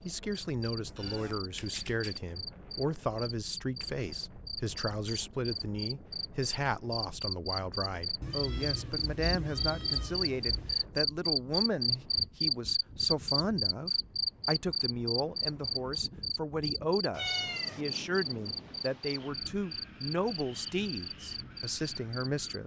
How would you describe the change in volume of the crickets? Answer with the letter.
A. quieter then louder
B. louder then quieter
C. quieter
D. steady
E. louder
B.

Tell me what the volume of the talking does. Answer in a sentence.
The volume of the talking stays about the same.